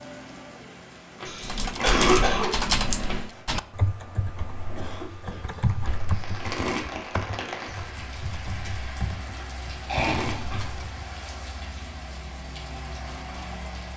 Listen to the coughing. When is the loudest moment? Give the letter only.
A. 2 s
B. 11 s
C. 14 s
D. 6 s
A.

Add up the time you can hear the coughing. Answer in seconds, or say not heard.
3 s.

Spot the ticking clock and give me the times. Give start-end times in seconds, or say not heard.
not heard.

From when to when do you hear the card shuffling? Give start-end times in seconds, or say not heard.
1.2-3.1, 5.8-6.9, 9.3-10.8.